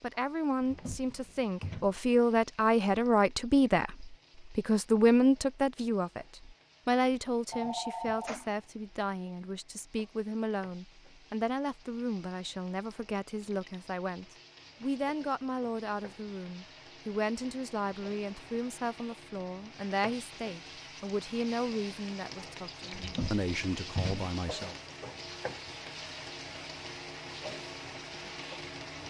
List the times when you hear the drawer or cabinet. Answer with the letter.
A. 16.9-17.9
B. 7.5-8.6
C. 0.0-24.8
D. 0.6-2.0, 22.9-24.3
D.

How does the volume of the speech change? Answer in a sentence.
The loudness of the speech goes down.